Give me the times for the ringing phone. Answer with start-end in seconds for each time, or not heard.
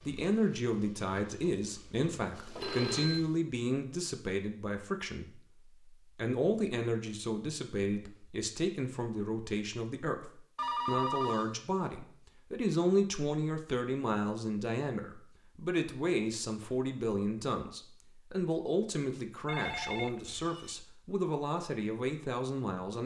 2.5-3.2, 10.6-11.6, 19.4-20.8.